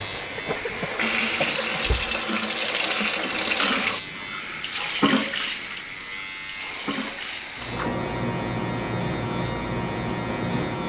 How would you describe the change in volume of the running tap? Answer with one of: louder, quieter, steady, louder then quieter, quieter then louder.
quieter.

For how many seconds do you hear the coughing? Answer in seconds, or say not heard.
2 s.